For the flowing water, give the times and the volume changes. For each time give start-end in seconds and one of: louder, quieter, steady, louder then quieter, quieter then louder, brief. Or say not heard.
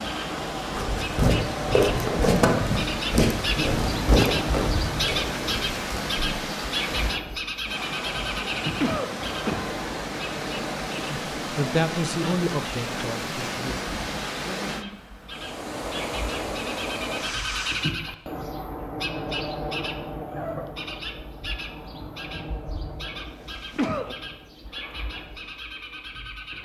0.0-17.9 steady.